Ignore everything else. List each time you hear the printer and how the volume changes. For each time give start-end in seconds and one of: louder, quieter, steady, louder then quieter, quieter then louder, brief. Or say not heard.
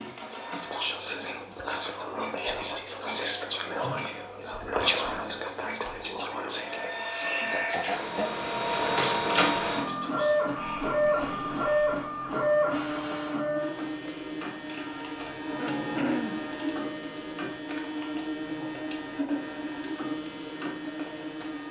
0.0-21.6 louder then quieter.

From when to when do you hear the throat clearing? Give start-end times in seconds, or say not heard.
7.3-8.3, 15.6-16.4.